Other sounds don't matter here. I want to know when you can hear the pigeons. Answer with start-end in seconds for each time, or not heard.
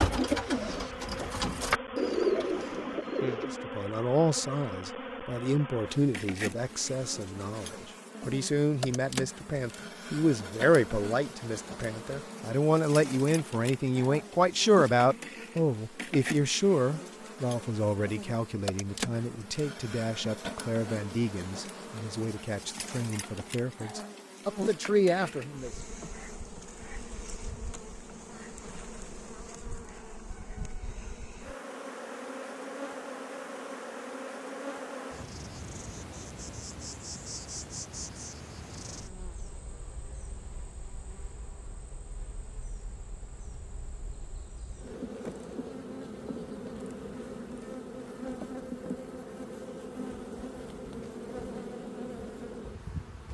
0.0-3.6.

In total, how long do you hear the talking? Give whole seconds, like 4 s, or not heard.
22 s.